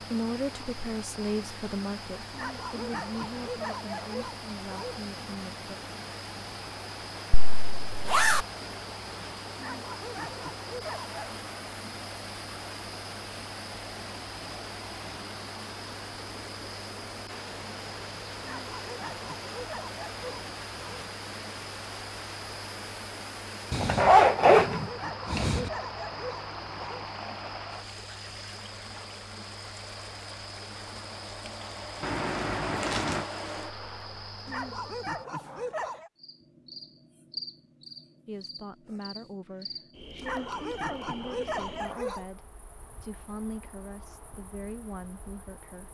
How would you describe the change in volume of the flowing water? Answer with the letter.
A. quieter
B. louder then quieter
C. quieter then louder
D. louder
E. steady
E.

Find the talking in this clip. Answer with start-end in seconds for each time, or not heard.
0.0-5.7, 38.2-45.8.